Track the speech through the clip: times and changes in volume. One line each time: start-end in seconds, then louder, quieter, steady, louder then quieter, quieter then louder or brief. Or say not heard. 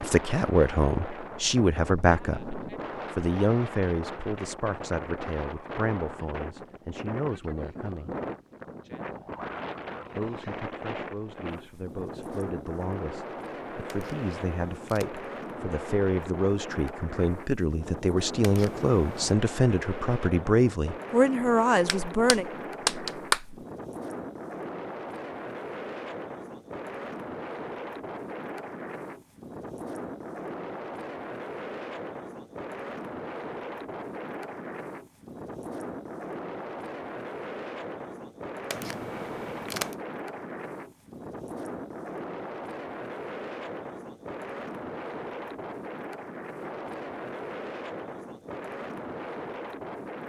0.0-8.2 quieter
10.1-22.4 louder.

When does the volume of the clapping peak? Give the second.
23 s.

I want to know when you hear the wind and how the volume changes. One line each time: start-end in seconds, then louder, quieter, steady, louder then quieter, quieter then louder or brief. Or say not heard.
0.0-50.2 steady.